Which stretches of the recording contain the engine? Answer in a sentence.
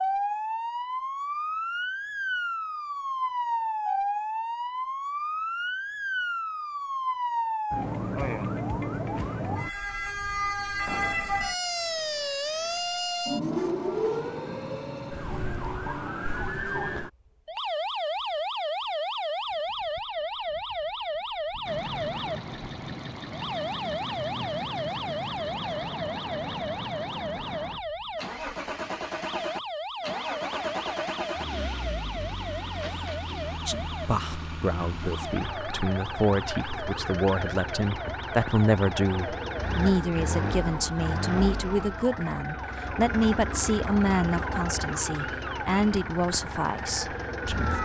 The engine can be heard from 21.6 to 47.8 s.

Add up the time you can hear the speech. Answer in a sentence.
The speech can be heard for 14 seconds in total.